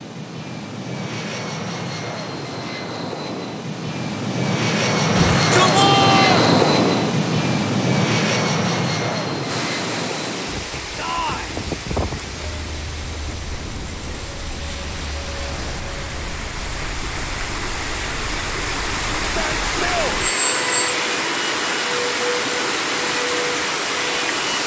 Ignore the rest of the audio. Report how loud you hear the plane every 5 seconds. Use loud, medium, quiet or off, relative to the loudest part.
medium, loud, quiet, quiet, medium.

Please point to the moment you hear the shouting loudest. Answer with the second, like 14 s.
6 s.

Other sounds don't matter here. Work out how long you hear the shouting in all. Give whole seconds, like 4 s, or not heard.
3 s.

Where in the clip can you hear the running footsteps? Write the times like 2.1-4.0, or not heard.
not heard.